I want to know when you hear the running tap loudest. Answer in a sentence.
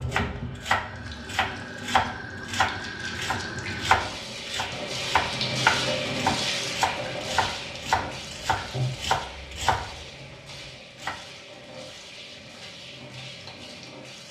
The volume of the running tap peaks at 6 seconds.